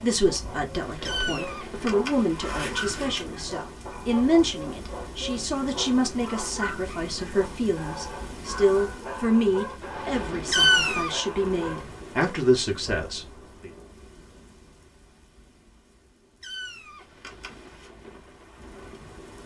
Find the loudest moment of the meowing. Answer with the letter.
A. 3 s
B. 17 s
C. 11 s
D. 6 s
C.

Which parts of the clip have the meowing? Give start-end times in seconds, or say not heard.
1.1-3.2, 10.5-11.2, 16.4-17.9.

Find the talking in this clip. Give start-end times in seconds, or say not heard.
0.0-13.7.